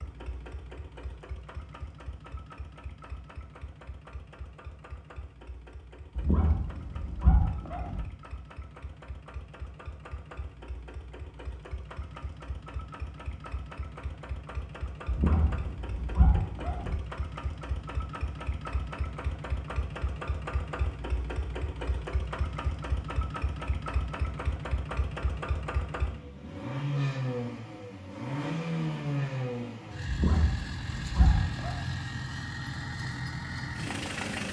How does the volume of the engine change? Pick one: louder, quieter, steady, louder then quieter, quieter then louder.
louder.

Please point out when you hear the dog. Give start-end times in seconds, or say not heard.
6.2-8.0, 15.1-16.9, 30.1-31.8.